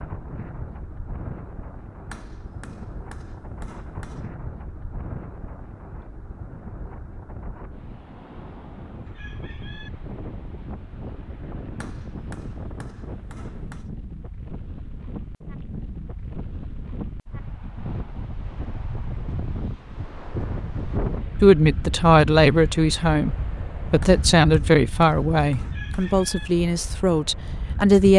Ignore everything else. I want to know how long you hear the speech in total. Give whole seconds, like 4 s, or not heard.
7 s.